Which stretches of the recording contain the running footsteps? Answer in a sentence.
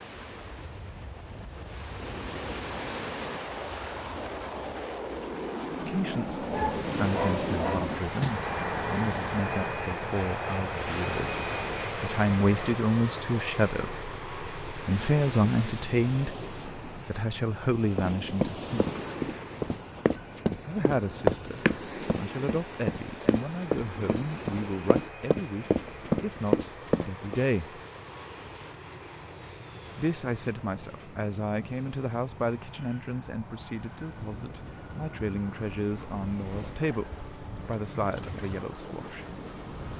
You can hear the running footsteps from 17.9 to 27.4 s.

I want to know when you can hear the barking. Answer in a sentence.
You can hear the barking from 6.4 to 8.4 s.